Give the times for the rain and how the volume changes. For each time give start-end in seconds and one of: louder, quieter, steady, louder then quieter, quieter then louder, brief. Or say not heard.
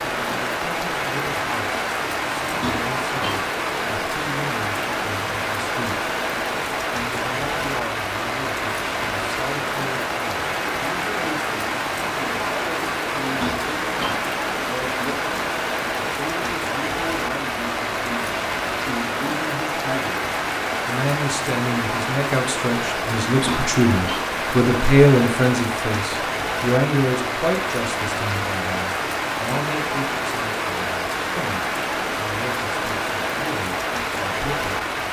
0.0-35.0 steady.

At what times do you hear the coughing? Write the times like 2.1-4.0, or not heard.
2.6-3.5, 13.4-14.2, 23.4-24.3.